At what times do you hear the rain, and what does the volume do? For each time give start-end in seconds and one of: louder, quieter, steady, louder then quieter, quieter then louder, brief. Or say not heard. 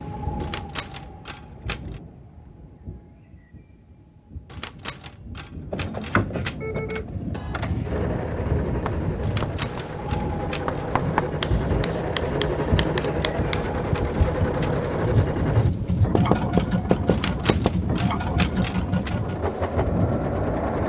0.0-20.8 louder.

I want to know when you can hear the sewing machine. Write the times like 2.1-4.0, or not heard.
5.7-20.8.